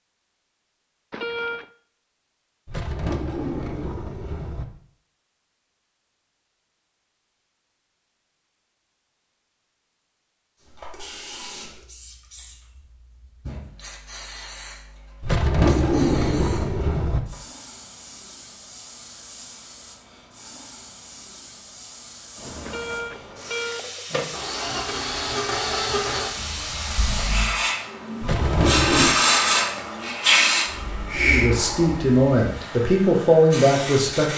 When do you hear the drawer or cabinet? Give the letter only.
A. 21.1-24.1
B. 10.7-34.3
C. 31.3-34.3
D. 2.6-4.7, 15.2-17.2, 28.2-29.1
D.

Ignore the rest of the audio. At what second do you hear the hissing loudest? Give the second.
29 s.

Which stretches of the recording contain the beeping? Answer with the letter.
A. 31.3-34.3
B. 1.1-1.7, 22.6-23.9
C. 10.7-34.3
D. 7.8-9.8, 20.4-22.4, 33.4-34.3
B.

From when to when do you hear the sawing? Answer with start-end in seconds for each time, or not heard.
not heard.